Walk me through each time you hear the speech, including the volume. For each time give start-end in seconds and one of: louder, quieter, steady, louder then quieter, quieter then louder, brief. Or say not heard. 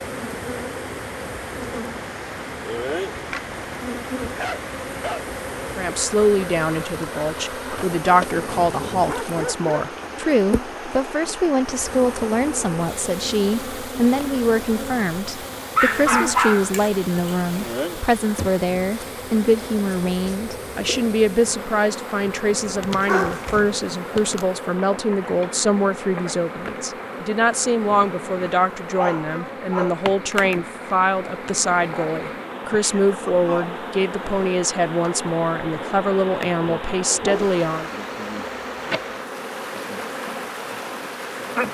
5.8-37.9 steady.